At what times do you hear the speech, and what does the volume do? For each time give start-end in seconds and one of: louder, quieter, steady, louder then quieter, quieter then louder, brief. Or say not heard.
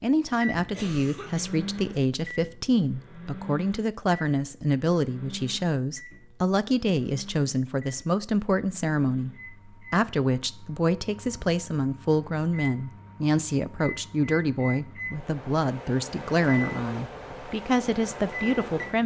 0.0-19.0 steady.